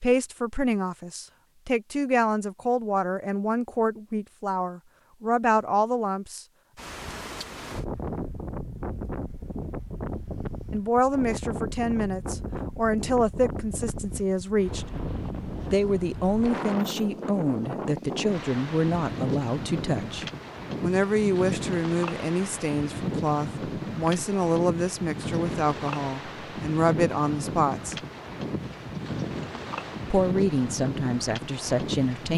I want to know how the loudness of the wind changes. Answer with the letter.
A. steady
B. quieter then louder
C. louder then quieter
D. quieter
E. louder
A.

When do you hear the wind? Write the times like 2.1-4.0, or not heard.
6.8-32.3.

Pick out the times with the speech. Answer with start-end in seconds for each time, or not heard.
0.0-6.5, 10.7-14.8, 15.7-27.9, 30.1-32.3.